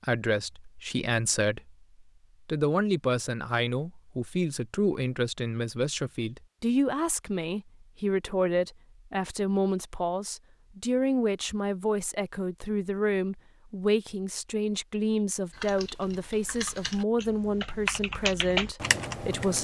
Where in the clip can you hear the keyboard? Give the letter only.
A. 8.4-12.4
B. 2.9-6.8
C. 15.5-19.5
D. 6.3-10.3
C.